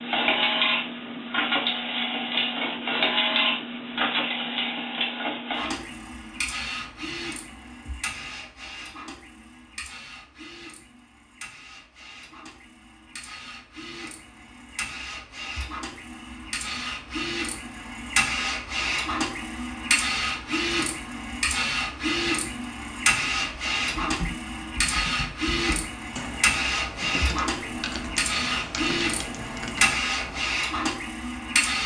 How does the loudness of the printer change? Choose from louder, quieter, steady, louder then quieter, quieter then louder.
quieter then louder.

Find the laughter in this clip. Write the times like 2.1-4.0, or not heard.
not heard.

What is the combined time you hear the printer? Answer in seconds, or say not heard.
32 s.